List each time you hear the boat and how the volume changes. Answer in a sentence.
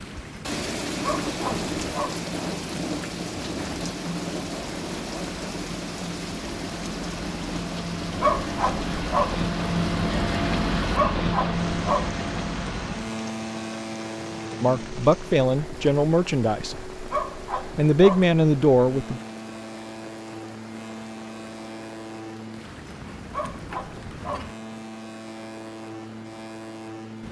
You can hear the boat from 0.0 to 27.2 s, getting louder then quieter.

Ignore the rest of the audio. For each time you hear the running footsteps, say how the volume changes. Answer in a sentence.
You can't hear the running footsteps here.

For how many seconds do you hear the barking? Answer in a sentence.
The barking can be heard for 6 seconds in total.